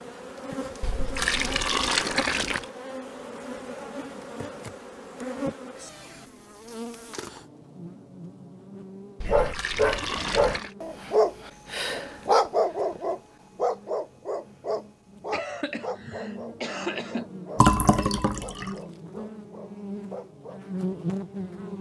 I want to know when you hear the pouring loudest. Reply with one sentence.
The volume of the pouring peaks at 18 seconds.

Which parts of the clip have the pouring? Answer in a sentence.
The pouring can be heard from 0.8 to 2.6 s, from 9.2 to 10.7 s and from 17.6 to 18.8 s.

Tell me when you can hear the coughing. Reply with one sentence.
The coughing can be heard from 15.3 to 17.3 s.